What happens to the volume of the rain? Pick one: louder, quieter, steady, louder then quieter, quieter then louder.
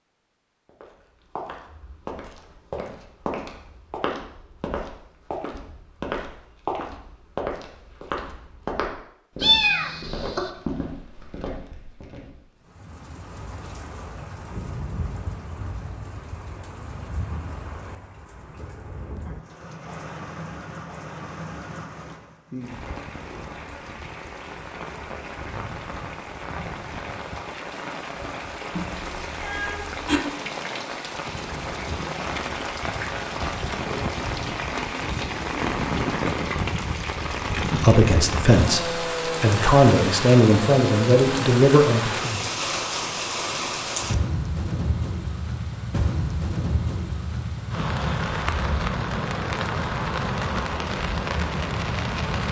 louder.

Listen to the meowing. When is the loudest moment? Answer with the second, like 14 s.
10 s.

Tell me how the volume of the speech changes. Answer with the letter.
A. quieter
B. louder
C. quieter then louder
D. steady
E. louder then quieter
C.